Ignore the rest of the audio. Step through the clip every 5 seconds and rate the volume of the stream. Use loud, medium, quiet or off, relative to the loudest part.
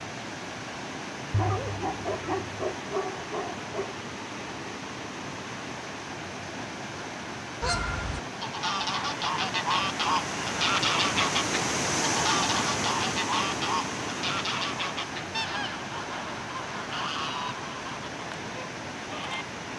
medium, medium, loud, medium.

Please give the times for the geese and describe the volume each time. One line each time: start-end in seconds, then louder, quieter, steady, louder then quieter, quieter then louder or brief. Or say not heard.
7.6-19.4 quieter.